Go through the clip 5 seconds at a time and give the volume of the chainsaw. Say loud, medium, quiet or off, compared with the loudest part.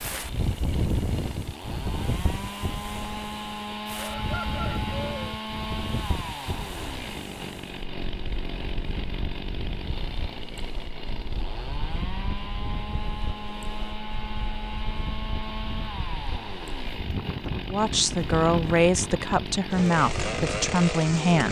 medium, medium, medium, medium, loud.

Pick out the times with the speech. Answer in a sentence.
The speech can be heard from 17.7 to 21.4 s.